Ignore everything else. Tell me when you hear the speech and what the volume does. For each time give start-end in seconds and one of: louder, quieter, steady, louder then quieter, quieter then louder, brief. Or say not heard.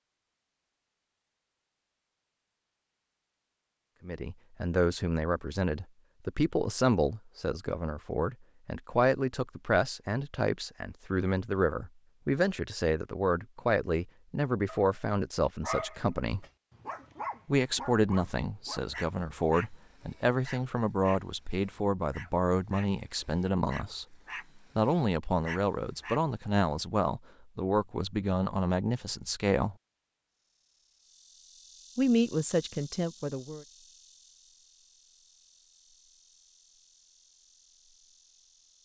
4.0-16.4 steady
17.4-29.8 steady
31.9-33.6 brief.